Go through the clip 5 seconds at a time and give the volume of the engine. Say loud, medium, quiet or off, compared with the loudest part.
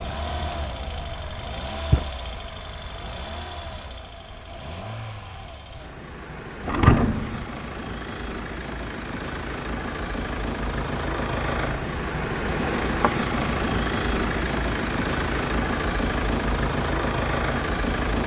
medium, medium, loud, loud.